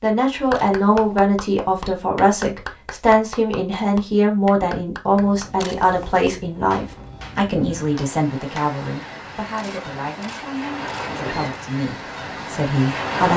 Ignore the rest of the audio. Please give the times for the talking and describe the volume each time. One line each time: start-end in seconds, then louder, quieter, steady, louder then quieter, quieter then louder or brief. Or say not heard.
0.0-13.3 quieter.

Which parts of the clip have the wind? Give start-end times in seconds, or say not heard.
5.0-13.3.